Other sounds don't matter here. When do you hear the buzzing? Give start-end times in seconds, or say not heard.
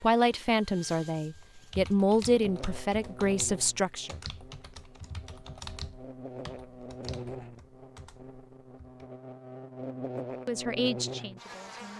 2.3-11.9.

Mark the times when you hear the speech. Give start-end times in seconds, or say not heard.
0.0-4.2, 10.4-11.9.